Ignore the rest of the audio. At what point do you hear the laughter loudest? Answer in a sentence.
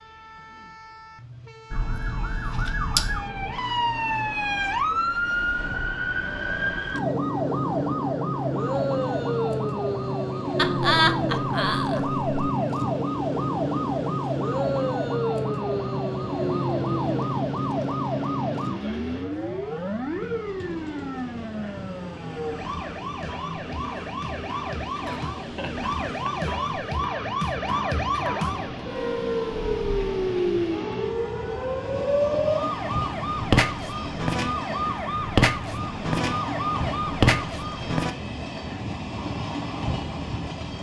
The volume of the laughter peaks at 11 seconds.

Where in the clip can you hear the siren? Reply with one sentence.
The siren can be heard from 1.7 to 38.1 s.